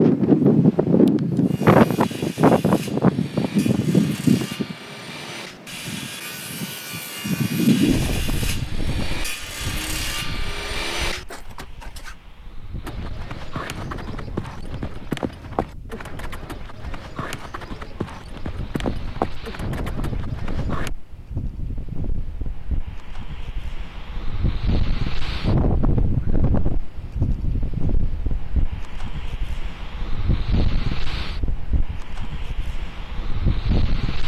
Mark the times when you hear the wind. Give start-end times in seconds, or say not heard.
0.0-34.2.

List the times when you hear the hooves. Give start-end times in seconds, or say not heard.
12.8-20.9.